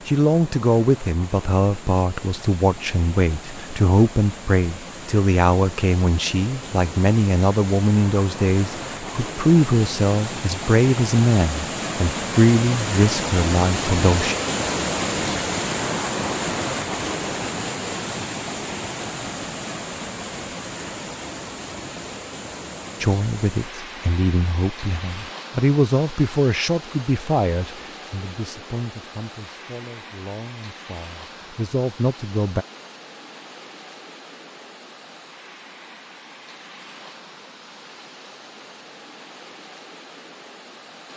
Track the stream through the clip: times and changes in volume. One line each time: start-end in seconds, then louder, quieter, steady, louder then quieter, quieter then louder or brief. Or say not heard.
0.0-41.1 louder then quieter.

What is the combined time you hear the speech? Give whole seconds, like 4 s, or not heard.
24 s.